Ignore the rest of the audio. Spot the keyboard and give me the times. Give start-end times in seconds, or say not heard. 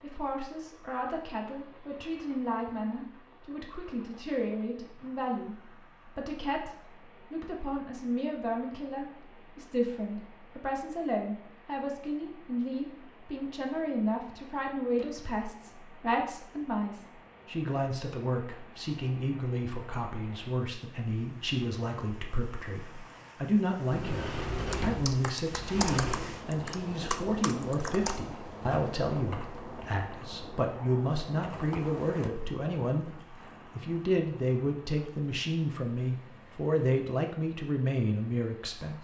24.7-32.5.